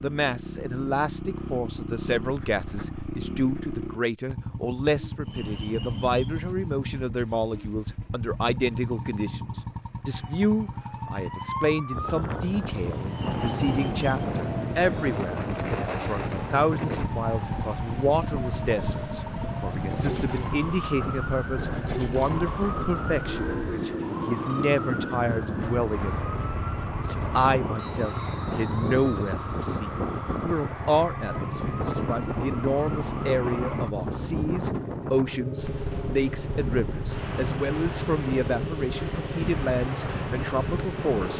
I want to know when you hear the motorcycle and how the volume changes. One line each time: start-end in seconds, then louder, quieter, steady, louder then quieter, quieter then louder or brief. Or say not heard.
0.0-41.3 steady.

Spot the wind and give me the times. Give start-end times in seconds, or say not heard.
11.9-41.3.